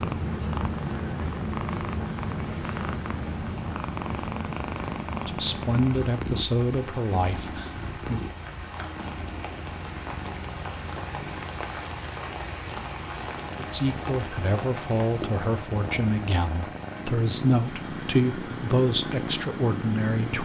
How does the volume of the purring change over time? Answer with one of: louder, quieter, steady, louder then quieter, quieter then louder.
quieter then louder.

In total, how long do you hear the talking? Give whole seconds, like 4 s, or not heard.
10 s.